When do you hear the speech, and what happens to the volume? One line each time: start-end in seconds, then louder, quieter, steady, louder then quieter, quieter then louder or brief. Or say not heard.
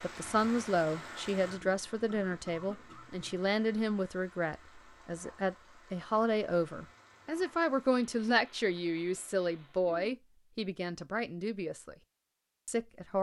0.0-11.9 steady
12.7-13.1 brief.